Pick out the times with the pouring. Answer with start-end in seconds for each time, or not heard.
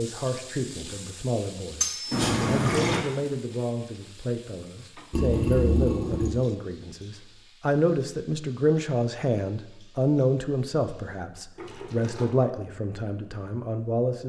2.1-3.0, 5.1-6.3, 11.6-12.3.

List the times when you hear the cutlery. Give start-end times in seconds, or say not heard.
1.8-2.2.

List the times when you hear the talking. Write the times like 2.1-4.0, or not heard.
0.0-14.2.